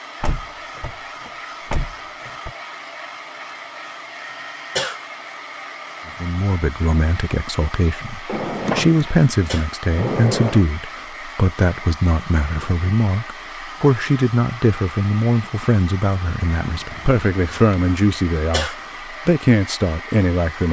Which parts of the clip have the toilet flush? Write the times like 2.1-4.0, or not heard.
not heard.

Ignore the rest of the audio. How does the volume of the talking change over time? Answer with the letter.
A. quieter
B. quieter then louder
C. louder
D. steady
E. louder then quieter
D.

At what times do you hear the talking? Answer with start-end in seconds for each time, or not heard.
6.2-20.6.